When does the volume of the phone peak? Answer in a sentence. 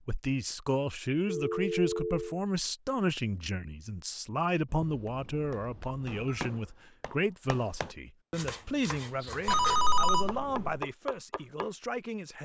The loudest moment of the phone is at 10 seconds.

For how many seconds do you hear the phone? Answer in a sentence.
You can hear the phone for 4 seconds altogether.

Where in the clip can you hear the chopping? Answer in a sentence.
You can hear the chopping from 5.0 to 11.7 s.